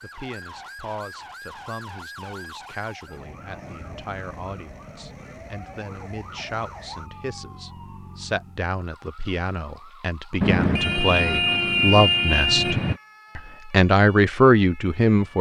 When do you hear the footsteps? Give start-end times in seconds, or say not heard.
not heard.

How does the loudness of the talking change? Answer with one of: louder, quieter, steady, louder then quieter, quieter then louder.
louder.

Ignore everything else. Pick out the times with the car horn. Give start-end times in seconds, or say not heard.
10.4-13.0.